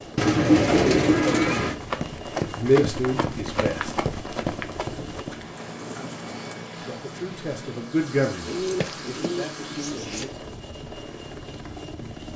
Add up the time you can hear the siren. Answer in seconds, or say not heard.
not heard.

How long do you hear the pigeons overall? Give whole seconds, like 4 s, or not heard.
5 s.